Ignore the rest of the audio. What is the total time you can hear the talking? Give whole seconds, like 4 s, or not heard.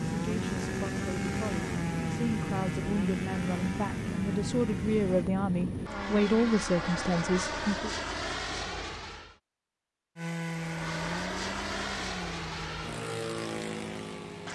8 s.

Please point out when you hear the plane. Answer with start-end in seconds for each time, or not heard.
0.0-9.3, 10.4-14.4.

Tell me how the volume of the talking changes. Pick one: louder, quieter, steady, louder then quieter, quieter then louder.
louder.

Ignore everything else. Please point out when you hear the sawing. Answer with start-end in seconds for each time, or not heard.
0.0-5.3, 10.2-14.4.